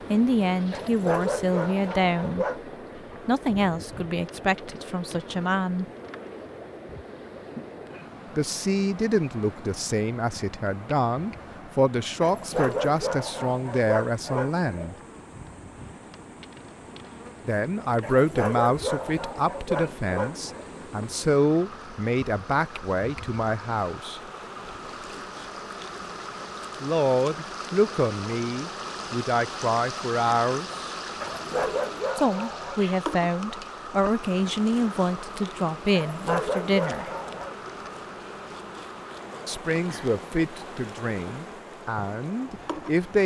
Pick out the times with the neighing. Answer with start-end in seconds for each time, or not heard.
not heard.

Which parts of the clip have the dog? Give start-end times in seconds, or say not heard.
0.7-2.6, 12.2-14.9, 18.0-20.6, 31.2-32.8, 35.9-37.5.